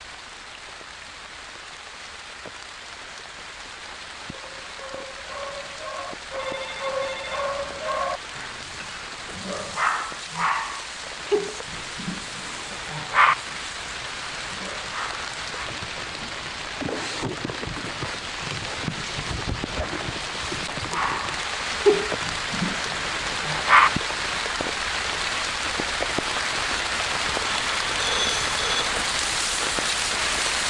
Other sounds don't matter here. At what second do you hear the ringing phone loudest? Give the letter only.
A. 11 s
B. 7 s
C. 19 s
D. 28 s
D.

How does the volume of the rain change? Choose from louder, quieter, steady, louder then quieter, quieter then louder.
louder.